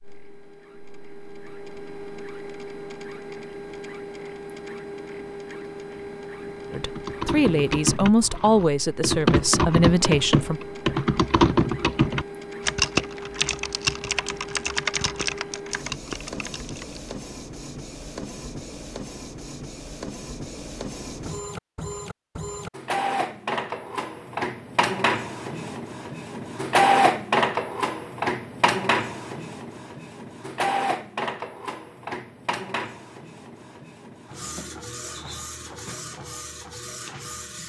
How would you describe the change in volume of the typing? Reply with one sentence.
The loudness of the typing goes up, then down.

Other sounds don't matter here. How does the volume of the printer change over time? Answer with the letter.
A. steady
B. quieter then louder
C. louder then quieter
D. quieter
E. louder
C.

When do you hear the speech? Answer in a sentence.
You can hear the speech from 6.7 to 10.6 s.